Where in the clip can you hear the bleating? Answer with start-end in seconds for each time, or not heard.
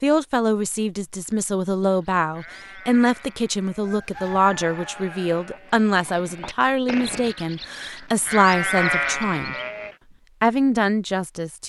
1.8-9.9.